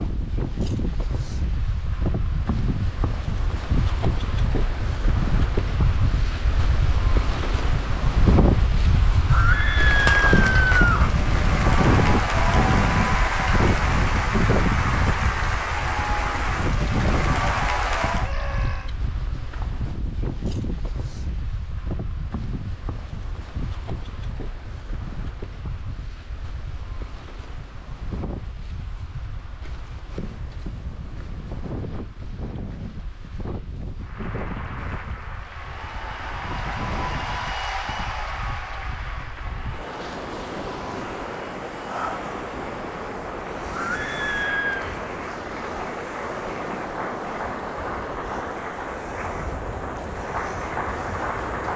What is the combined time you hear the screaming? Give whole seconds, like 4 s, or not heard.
4 s.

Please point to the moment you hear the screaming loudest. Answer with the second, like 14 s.
10 s.